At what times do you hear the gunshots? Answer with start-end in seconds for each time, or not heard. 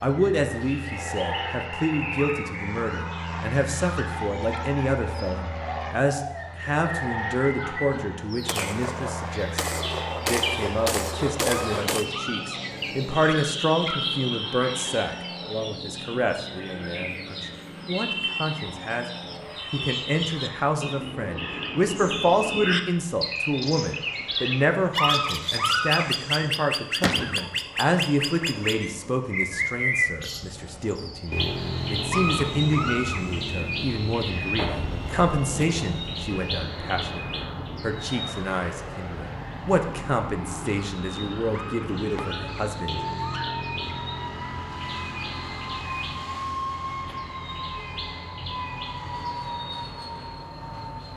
8.4-12.1, 27.0-27.4, 34.5-36.6.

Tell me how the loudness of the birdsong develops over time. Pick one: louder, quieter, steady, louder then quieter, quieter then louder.
louder then quieter.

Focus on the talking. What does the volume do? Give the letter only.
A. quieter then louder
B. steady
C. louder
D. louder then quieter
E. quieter
B.